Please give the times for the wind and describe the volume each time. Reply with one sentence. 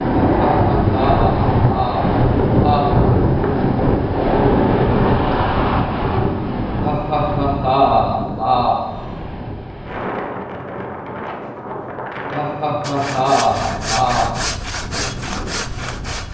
You can hear the wind from 0.0 to 16.2 s, getting quieter.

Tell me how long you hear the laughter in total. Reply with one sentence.
The laughter can be heard for 7 seconds in total.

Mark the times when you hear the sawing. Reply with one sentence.
The sawing can be heard from 12.8 to 16.2 s.